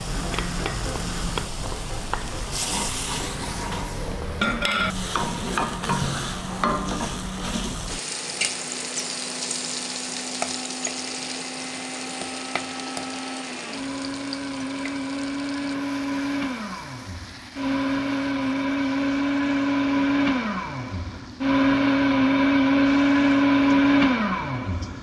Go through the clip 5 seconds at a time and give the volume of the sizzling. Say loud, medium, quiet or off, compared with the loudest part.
loud, loud, medium, quiet, quiet.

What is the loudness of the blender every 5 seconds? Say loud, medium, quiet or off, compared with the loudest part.
quiet, quiet, quiet, medium, loud.